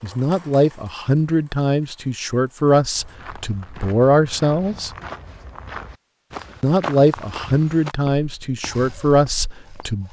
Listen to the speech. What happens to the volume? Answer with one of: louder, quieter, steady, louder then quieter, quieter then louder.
steady.